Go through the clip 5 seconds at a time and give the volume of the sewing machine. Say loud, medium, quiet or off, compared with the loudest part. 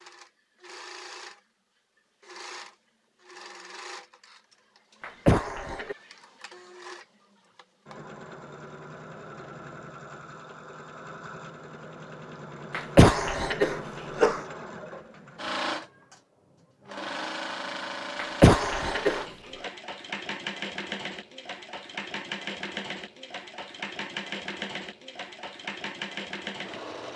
medium, medium, medium, loud, loud, loud.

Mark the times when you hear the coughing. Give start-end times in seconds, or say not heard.
5.0-6.0, 12.7-14.4, 18.1-19.2.